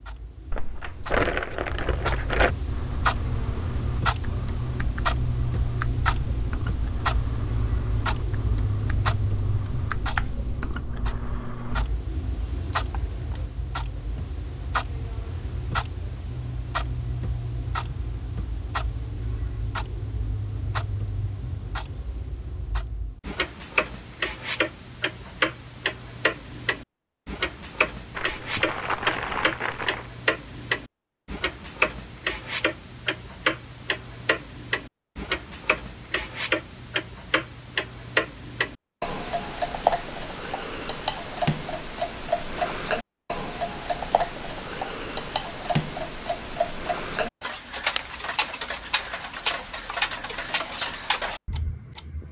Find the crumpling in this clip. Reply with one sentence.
You can hear the crumpling from 0.5 to 2.5 s and from 28.1 to 30.1 s.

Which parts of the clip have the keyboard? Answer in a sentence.
The keyboard can be heard from 2.6 to 11.8 s.